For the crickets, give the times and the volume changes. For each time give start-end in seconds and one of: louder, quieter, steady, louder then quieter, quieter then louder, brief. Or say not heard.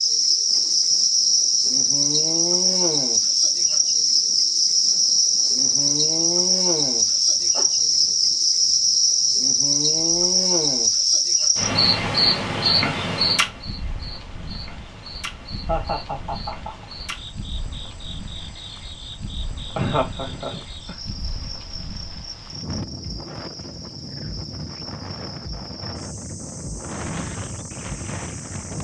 0.0-28.7 quieter.